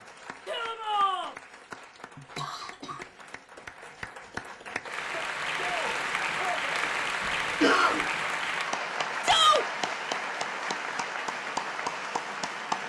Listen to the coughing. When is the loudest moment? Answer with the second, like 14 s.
8 s.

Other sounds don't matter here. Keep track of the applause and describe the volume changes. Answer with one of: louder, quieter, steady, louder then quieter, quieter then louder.
louder.